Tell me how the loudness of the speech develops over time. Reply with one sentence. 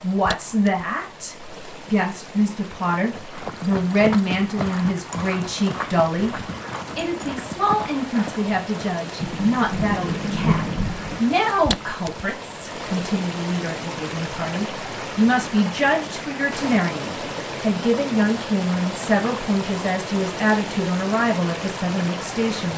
The volume of the speech stays about the same.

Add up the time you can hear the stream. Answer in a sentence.
You can hear the stream for 23 seconds altogether.